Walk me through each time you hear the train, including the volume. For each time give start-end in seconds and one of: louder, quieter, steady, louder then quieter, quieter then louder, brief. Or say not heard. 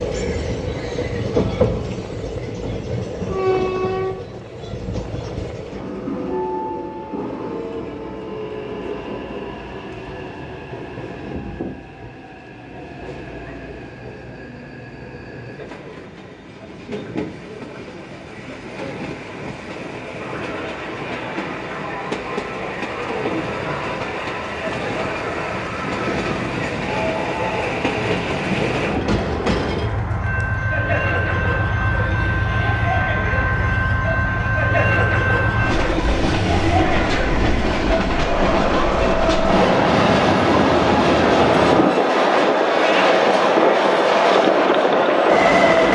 0.0-45.9 quieter then louder.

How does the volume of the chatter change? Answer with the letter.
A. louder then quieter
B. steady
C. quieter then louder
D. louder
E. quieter
D.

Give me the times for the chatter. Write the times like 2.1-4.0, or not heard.
20.1-45.9.